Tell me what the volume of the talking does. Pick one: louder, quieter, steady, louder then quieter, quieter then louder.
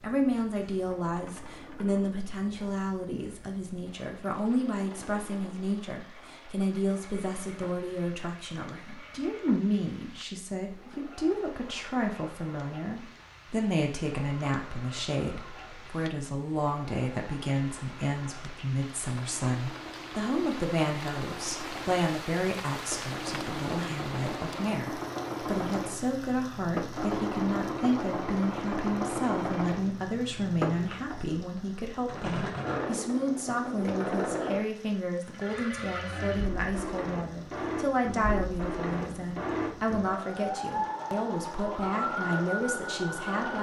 steady.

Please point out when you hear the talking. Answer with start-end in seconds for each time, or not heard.
0.0-43.5.